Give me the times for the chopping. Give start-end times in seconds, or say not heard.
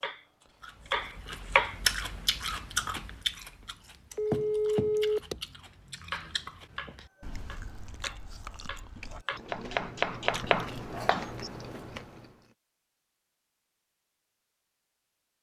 0.0-1.8, 6.1-11.5.